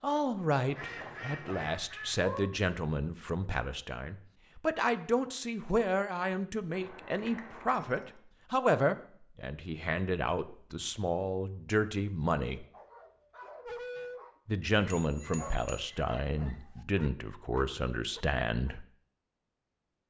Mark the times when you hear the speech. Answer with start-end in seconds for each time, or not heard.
0.0-12.7, 14.4-18.9.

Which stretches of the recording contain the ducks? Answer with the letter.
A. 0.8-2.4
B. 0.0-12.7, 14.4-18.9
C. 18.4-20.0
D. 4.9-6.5
A.